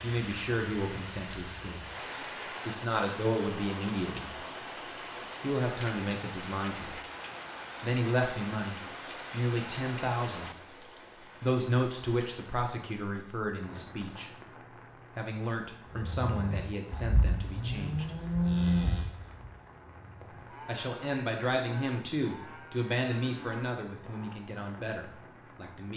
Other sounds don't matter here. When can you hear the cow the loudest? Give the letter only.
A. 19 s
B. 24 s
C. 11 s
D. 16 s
A.